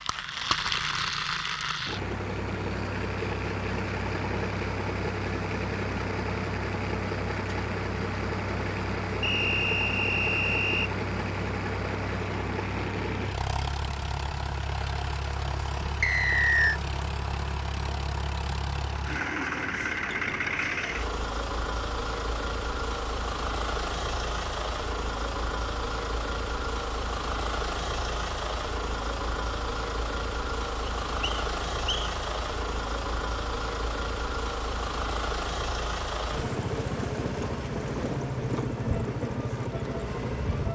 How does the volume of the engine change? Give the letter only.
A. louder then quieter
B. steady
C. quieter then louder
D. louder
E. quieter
B.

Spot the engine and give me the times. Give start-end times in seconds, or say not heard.
0.0-40.7.